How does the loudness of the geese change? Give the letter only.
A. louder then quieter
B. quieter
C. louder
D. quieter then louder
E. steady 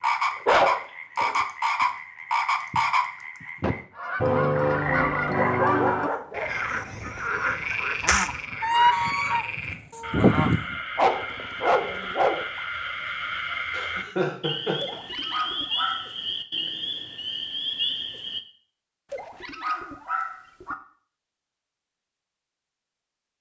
D.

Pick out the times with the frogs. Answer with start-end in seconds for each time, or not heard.
0.0-18.4.